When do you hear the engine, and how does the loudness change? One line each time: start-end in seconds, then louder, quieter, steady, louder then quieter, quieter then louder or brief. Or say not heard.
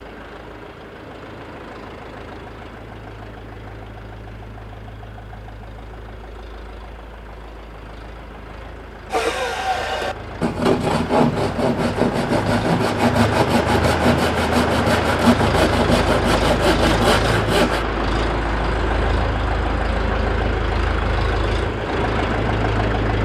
0.0-23.2 louder.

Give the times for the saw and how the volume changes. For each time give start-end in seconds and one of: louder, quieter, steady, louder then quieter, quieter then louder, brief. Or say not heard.
9.1-17.9 steady.